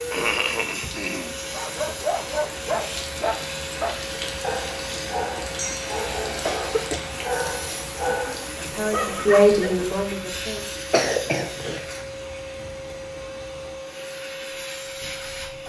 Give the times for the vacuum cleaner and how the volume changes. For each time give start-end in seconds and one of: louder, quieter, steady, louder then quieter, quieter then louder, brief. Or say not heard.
0.0-15.6 steady.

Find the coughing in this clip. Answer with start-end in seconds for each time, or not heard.
0.1-1.3, 5.5-7.5, 10.9-11.8.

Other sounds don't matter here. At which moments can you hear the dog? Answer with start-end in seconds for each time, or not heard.
1.5-9.8.